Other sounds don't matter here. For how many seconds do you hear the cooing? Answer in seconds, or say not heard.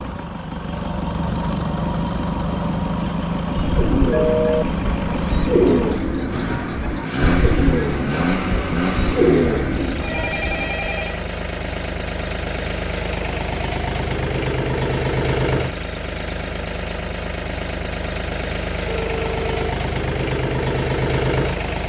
7 s.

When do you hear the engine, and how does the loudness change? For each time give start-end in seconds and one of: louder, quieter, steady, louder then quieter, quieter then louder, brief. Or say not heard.
0.0-21.8 steady.